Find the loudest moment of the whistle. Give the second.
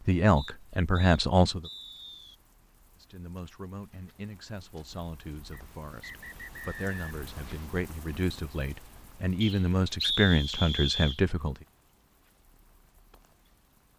10 s.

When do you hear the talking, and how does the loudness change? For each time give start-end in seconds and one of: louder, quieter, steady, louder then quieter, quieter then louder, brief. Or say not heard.
0.1-1.7 brief
3.0-11.6 louder.